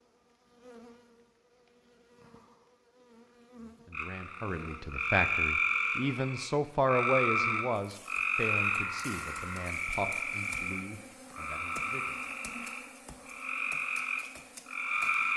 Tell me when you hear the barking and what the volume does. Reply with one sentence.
You can't hear the barking here.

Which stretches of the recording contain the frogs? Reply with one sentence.
The frogs can be heard from 3.9 to 15.3 s.